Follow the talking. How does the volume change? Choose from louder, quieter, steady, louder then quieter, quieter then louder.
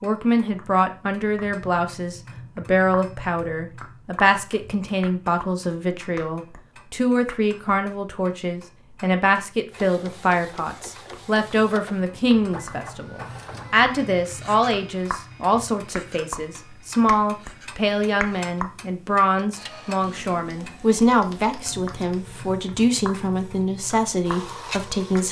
steady.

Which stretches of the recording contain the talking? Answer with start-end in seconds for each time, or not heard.
0.0-25.2.